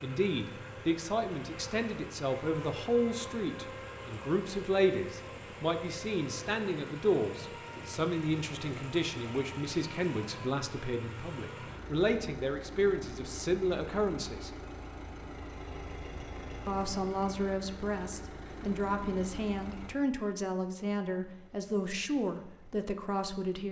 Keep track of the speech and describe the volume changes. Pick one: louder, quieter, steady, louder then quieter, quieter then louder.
steady.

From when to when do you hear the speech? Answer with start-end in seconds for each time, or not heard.
0.0-14.5, 16.6-23.6.